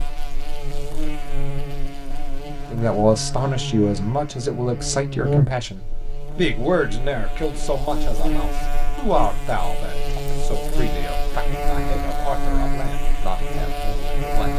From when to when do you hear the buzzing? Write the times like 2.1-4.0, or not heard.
0.0-14.5.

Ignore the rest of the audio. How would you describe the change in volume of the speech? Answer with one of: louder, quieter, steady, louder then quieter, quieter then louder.
quieter.